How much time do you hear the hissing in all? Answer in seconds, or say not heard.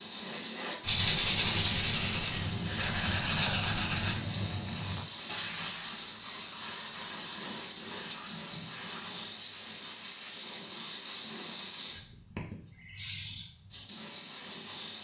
15 s.